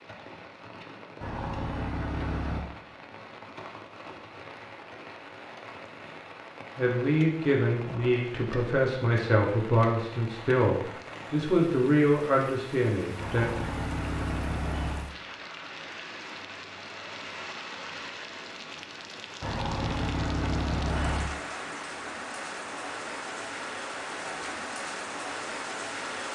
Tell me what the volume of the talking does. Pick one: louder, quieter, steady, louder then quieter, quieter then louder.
steady.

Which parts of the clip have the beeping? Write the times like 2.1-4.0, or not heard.
1.2-2.6, 13.2-15.1, 19.4-21.4.